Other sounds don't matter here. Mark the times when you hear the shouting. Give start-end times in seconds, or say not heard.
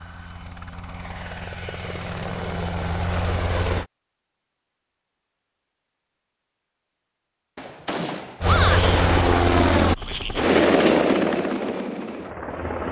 8.4-9.0.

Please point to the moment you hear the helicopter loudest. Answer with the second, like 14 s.
11 s.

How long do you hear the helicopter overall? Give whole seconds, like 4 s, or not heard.
8 s.